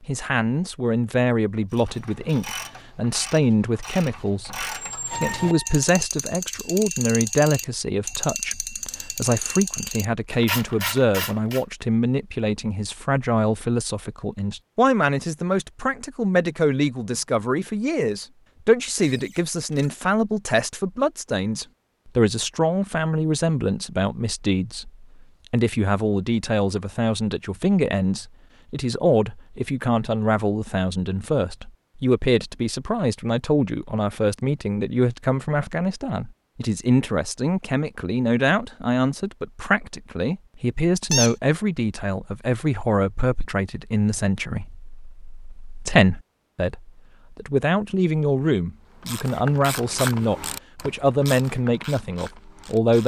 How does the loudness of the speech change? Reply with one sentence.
The volume of the speech stays about the same.